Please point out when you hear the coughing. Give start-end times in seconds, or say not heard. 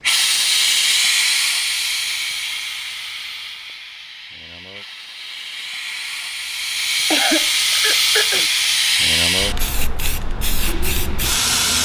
7.1-8.5.